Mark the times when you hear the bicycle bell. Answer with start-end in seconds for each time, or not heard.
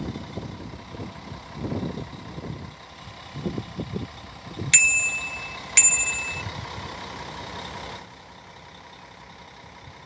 4.7-6.4.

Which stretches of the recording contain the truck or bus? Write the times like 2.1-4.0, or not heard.
0.0-10.0.